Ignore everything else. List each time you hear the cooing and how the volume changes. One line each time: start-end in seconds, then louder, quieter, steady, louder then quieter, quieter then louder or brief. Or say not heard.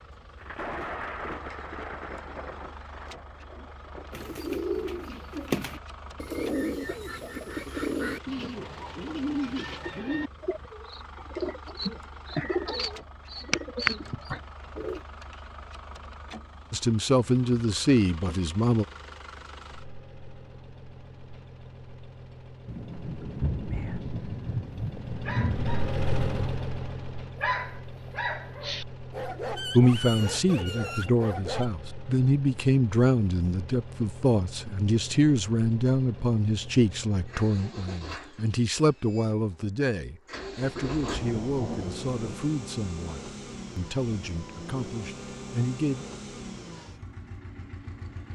4.1-15.0 steady.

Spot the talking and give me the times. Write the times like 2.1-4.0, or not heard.
16.7-18.9, 29.7-46.0.